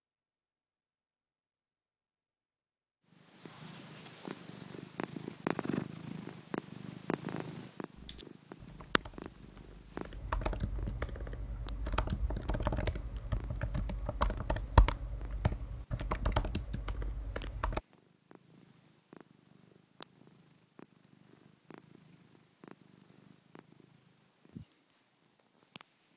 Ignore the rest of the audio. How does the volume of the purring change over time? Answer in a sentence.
The volume of the purring goes down.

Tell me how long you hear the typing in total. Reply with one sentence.
You can hear the typing for 10 seconds altogether.